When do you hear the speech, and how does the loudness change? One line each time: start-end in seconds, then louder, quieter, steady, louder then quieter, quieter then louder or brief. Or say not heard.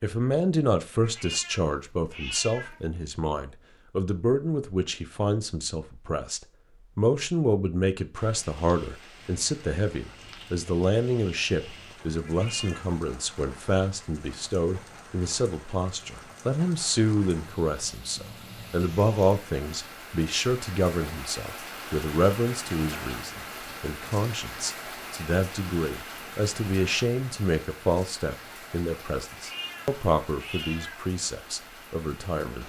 0.0-32.6 steady.